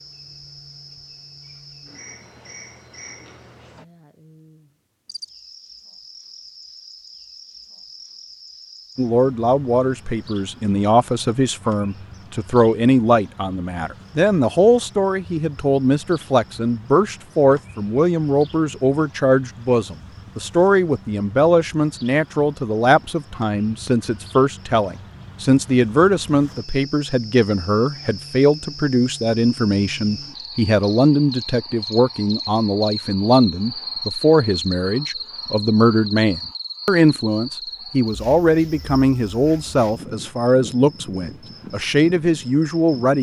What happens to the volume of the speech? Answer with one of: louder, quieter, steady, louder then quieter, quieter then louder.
steady.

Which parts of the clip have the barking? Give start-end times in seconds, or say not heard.
not heard.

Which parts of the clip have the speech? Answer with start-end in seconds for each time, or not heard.
8.9-43.1.